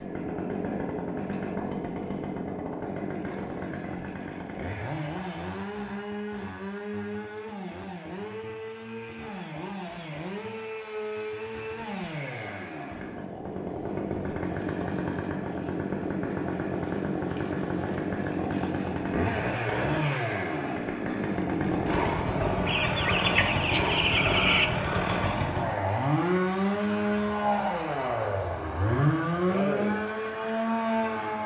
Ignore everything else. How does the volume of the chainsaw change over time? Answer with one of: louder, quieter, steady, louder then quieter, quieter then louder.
louder.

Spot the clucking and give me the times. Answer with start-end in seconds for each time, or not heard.
22.6-24.7.